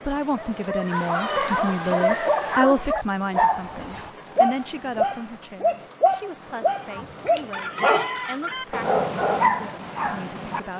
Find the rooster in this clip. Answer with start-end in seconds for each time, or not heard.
7.0-8.7.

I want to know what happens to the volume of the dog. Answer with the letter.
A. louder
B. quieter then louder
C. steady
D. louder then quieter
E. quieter
C.